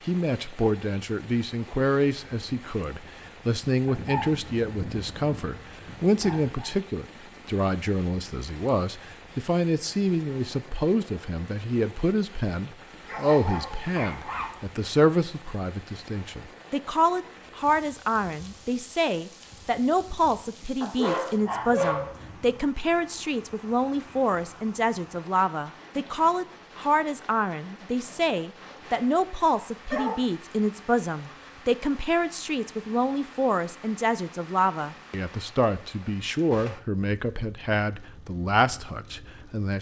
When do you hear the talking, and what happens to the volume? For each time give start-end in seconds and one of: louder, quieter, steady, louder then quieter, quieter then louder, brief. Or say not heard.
0.1-39.7 steady.